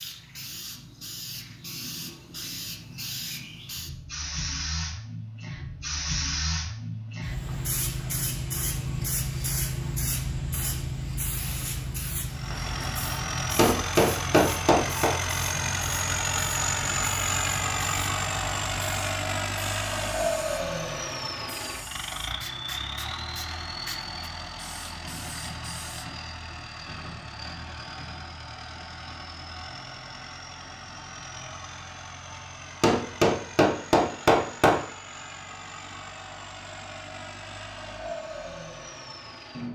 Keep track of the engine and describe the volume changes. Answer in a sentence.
The loudness of the engine goes down.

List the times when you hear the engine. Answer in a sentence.
You can hear the engine from 12.2 to 39.6 s.